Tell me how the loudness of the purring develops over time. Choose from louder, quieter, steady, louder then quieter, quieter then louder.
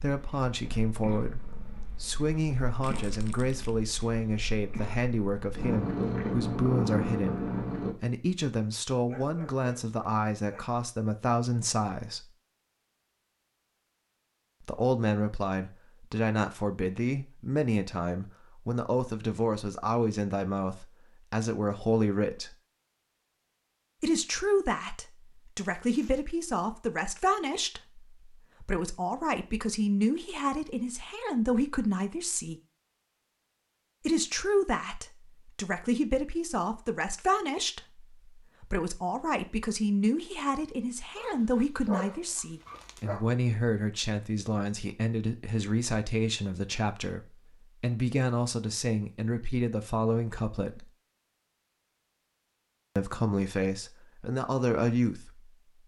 quieter then louder.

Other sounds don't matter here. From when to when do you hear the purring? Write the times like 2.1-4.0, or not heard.
0.1-8.0.